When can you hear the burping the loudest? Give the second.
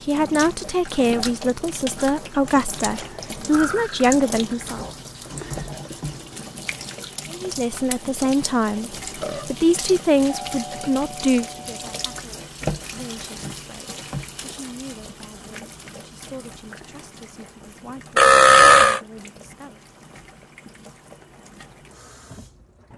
19 s.